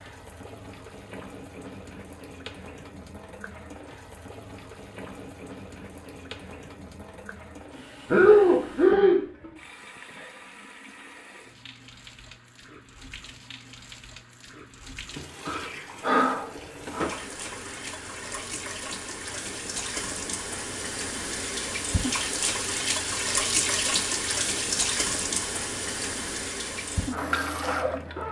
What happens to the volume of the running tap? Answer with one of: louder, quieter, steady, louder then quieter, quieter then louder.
louder.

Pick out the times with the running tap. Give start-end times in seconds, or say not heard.
0.0-28.2.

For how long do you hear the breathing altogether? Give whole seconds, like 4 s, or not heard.
3 s.